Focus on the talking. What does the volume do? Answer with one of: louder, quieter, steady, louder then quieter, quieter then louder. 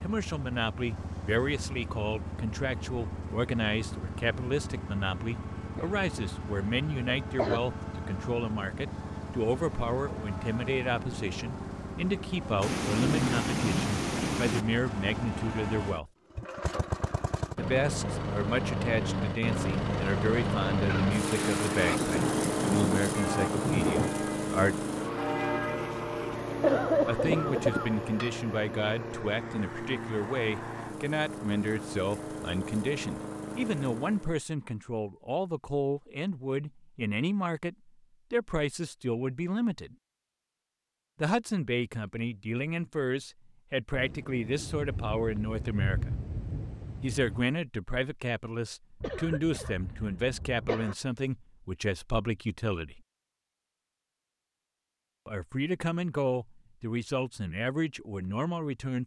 steady.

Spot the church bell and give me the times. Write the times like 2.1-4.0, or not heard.
23.1-28.3.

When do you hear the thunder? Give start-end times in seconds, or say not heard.
12.6-14.7, 20.9-24.1, 44.0-47.4.